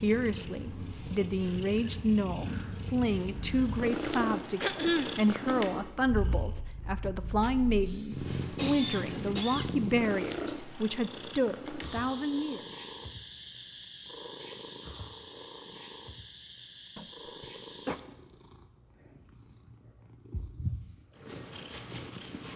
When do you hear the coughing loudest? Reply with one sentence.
The loudest moment of the coughing is at 5 seconds.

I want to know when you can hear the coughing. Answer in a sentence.
You can hear the coughing from 4.6 to 5.2 s, from 7.8 to 9.8 s and from 16.9 to 17.9 s.